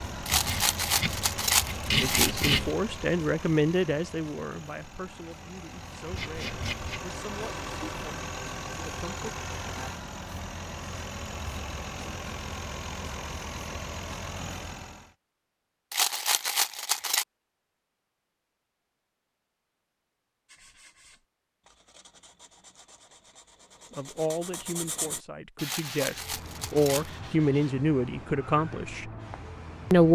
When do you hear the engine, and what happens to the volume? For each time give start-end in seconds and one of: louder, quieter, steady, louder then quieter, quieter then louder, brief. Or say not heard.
0.0-15.2 quieter then louder.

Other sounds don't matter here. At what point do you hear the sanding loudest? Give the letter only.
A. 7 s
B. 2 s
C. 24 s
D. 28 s
B.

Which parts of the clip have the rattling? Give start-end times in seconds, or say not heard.
0.2-2.5, 15.9-17.2, 25.6-27.1.